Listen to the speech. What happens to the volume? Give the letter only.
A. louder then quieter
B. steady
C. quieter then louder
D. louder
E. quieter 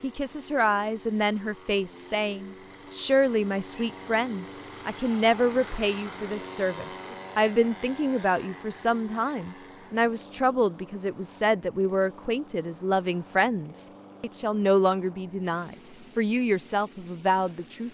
B.